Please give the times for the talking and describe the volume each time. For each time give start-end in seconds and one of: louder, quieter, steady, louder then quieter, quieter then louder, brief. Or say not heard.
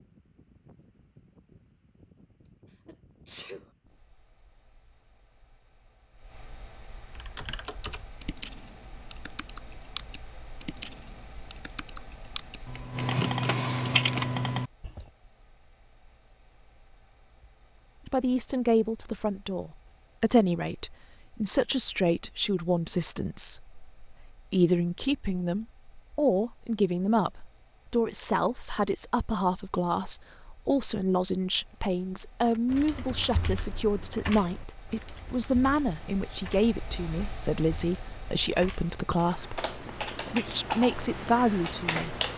18.1-42.1 steady.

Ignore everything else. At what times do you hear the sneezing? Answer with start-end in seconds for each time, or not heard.
2.9-3.6.